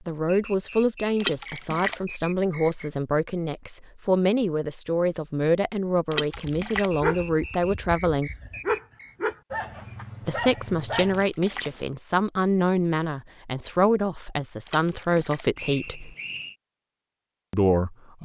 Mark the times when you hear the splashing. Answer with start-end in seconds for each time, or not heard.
1.2-2.0, 6.1-7.0, 10.9-11.7, 14.7-15.5.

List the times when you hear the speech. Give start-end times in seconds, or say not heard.
0.1-8.3, 10.2-16.1, 17.5-18.2.